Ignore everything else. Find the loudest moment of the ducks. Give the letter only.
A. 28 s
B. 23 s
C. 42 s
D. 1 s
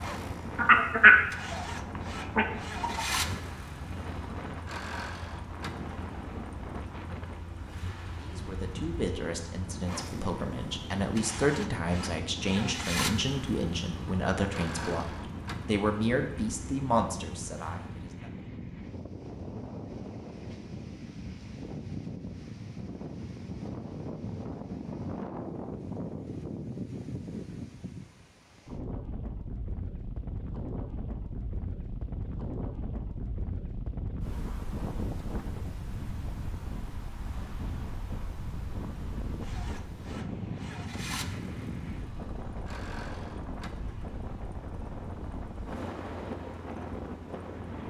D.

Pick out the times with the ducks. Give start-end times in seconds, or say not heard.
0.6-1.6, 2.4-3.0.